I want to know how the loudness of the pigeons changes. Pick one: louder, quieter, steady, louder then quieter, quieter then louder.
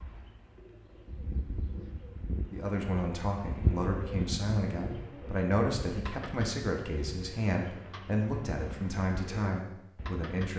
louder then quieter.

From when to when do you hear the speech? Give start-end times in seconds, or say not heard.
2.5-10.5.